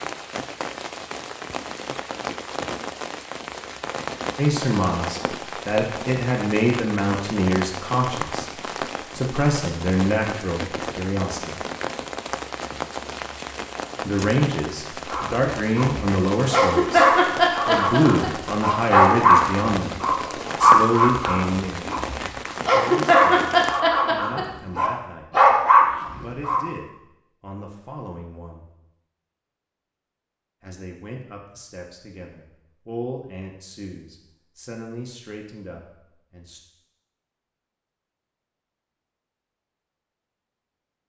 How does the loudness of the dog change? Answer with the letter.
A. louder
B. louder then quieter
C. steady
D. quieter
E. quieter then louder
C.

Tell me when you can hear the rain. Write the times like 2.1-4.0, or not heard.
0.0-23.8.